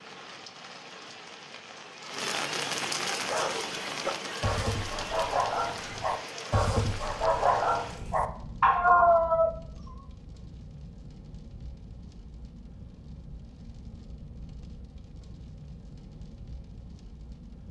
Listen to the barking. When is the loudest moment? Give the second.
9 s.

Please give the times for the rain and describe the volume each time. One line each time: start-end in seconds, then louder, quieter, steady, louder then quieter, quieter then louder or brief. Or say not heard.
0.0-17.6 quieter.